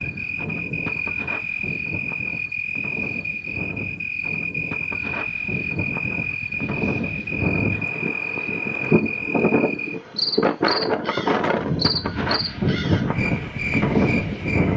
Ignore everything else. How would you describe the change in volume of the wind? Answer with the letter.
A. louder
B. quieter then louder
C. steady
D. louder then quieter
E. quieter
A.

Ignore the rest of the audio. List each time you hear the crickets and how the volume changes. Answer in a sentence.
You can hear the crickets from 0.0 to 14.7 s, at a steady volume.